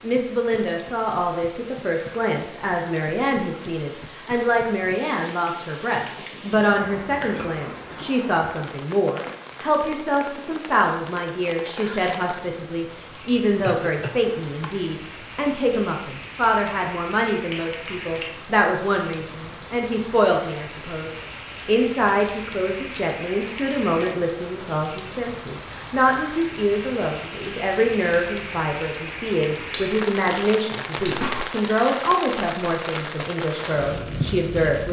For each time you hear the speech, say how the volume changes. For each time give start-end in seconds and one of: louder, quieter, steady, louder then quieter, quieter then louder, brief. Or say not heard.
0.0-34.8 steady.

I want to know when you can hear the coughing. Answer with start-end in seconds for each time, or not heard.
6.2-8.1, 13.6-14.7, 31.0-31.4.